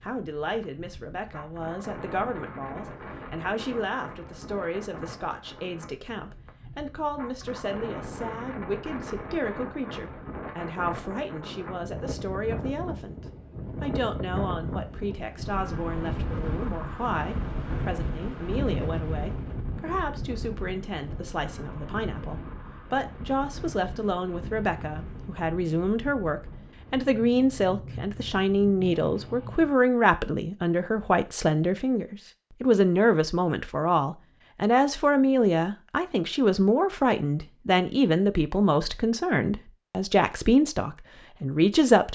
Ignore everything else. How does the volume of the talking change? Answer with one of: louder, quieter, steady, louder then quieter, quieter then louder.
louder.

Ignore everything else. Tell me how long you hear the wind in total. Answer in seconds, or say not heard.
30 s.